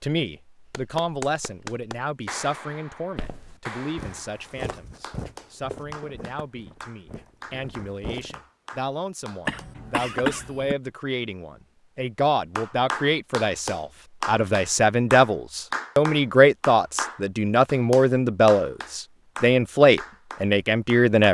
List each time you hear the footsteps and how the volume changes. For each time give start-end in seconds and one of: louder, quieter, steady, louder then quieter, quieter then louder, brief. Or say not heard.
3.1-8.3 quieter.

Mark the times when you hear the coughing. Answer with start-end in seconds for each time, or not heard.
9.4-10.8.